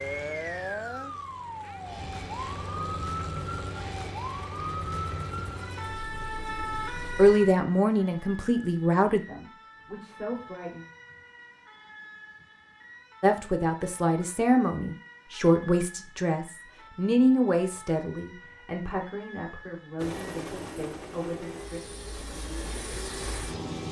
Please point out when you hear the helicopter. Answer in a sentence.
You can hear the helicopter from 0.0 to 7.3 s and from 19.9 to 23.8 s.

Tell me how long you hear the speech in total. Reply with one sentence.
You can hear the speech for 12 seconds altogether.